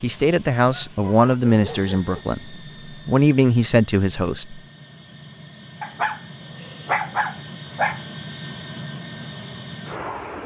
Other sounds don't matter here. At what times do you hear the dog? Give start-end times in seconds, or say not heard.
0.7-2.2, 5.8-8.0.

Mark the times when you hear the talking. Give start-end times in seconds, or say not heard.
0.0-4.6.